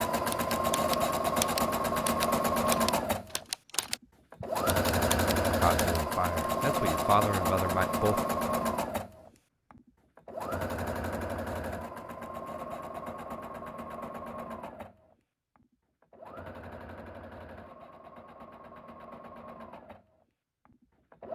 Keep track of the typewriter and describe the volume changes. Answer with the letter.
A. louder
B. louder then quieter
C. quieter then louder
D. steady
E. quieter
E.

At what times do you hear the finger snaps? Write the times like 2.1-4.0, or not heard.
not heard.